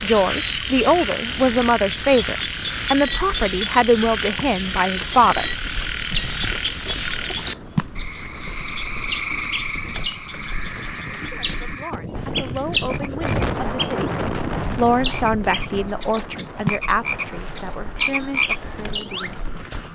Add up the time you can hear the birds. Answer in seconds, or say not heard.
15 s.